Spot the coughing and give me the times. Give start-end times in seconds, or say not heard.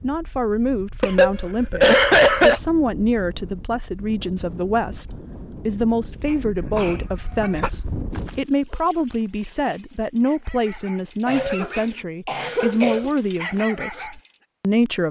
1.0-2.6, 6.3-7.7, 11.2-13.1.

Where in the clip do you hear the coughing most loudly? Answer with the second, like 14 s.
2 s.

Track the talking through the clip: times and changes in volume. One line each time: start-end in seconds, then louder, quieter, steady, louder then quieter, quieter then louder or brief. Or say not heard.
0.0-15.0 steady.